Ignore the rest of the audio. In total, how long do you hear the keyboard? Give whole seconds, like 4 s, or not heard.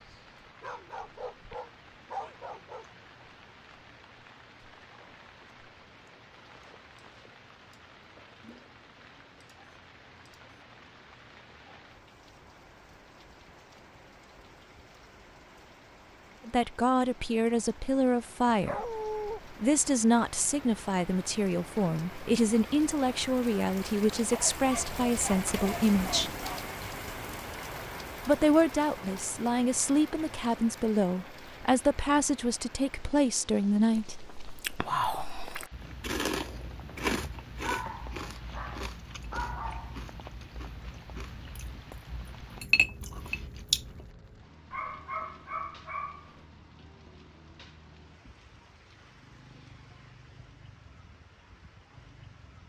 not heard.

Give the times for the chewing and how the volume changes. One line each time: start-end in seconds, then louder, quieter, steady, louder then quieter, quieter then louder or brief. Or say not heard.
34.0-44.3 quieter then louder.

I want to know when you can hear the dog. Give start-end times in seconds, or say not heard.
0.6-2.9, 18.6-19.4, 24.3-26.7, 37.6-40.0, 44.7-46.4.